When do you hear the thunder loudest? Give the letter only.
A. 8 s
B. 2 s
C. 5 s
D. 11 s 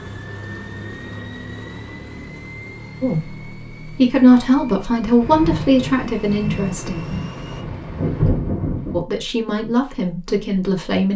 A.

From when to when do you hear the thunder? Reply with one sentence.
The thunder can be heard from 5.2 to 9.0 s.